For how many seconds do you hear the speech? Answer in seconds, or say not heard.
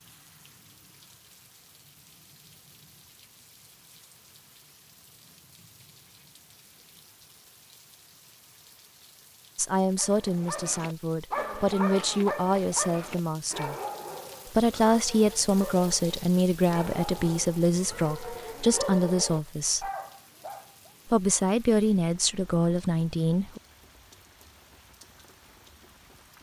12 s.